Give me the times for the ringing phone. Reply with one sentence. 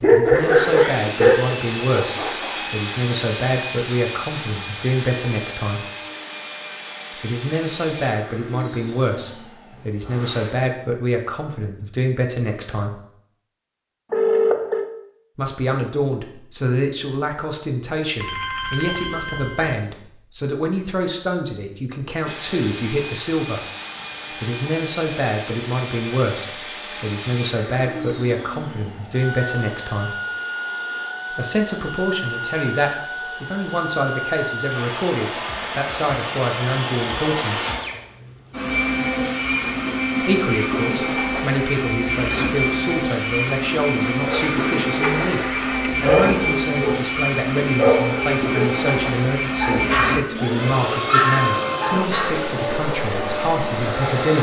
You can hear the ringing phone from 14.1 to 14.9 s, from 18.2 to 19.8 s and from 44.2 to 45.9 s.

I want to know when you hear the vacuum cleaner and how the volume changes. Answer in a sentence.
The vacuum cleaner can be heard from 0.0 to 10.5 s, getting quieter; and from 22.2 to 54.3 s, getting louder.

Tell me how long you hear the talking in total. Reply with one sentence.
You can hear the talking for 46 seconds altogether.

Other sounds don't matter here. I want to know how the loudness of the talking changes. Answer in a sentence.
The volume of the talking stays about the same.